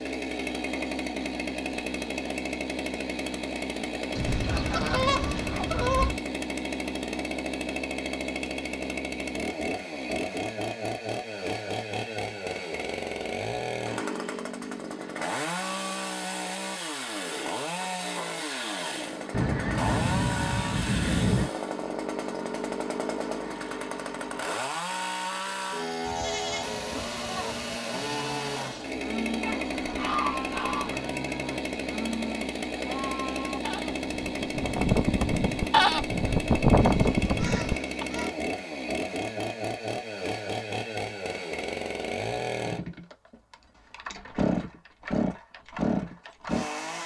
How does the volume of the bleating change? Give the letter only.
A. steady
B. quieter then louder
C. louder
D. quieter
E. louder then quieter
C.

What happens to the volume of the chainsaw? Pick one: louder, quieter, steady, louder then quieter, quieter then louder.
steady.